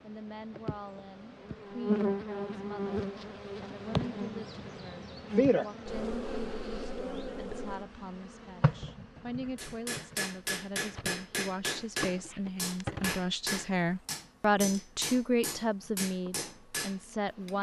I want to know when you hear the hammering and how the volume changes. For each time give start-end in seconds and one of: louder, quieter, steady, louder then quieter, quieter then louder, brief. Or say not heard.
9.6-17.5 steady.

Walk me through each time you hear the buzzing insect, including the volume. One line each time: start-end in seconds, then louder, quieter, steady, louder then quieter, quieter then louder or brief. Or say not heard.
0.0-17.5 quieter.